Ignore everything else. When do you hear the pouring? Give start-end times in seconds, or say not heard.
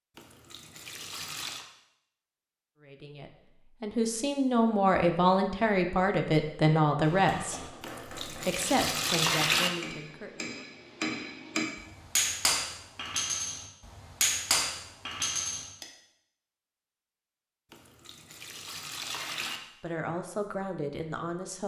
0.1-1.6, 7.8-9.7, 17.7-19.6.